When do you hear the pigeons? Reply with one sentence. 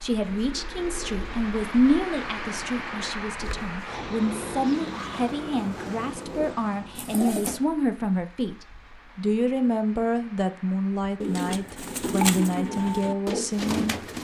The pigeons can be heard from 0.2 to 7.6 s and from 11.2 to 14.1 s.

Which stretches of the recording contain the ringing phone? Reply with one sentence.
The ringing phone can't be heard in this clip.